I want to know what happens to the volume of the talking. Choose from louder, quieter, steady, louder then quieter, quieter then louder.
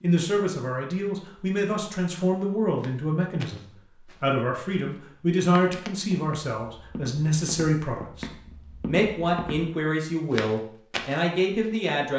steady.